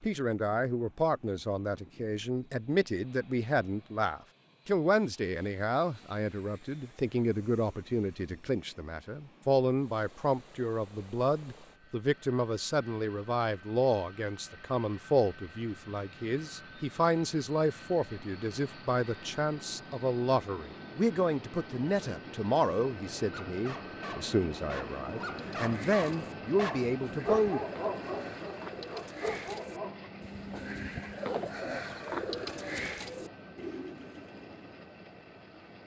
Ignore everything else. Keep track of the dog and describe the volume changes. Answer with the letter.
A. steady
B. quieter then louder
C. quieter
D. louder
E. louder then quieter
E.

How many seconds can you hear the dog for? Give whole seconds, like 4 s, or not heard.
7 s.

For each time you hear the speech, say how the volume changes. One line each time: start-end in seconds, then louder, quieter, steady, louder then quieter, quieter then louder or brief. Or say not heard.
0.0-27.6 steady.